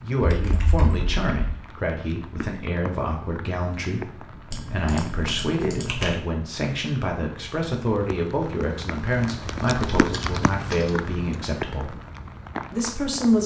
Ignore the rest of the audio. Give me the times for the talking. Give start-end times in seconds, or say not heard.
0.0-11.9, 12.7-13.4.